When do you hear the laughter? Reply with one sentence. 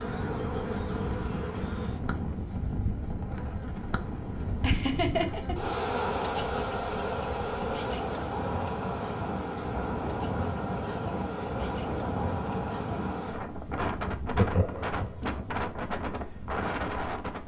The laughter can be heard from 4.6 to 5.7 s and from 14.2 to 15.2 s.